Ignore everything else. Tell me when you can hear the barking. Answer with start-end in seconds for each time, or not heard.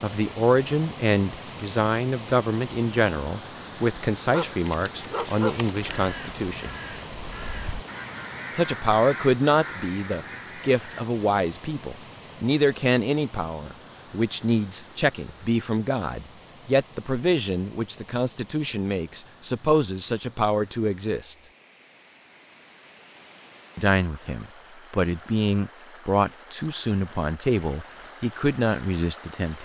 4.3-5.9.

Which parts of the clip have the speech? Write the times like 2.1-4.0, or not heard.
0.0-6.8, 8.6-21.4, 23.8-29.6.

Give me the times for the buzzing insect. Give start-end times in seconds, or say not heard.
not heard.